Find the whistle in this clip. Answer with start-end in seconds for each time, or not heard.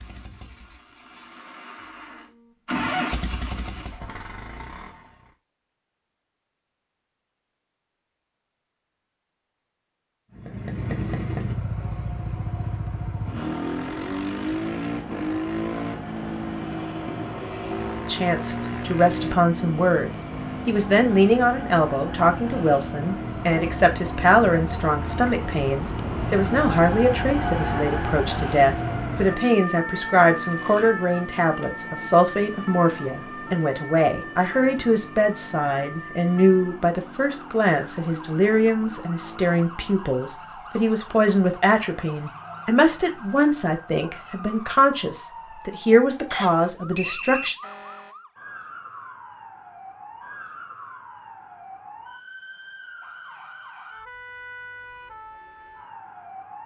46.3-47.5.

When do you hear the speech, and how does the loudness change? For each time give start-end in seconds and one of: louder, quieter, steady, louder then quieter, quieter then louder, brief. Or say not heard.
18.1-47.5 steady.